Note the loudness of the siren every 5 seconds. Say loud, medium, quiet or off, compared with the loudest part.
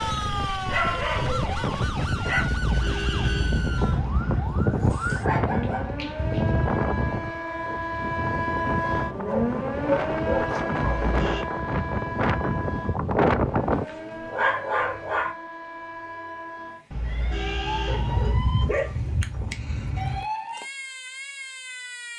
loud, loud, loud, medium, medium.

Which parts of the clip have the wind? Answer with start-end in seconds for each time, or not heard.
0.0-13.8.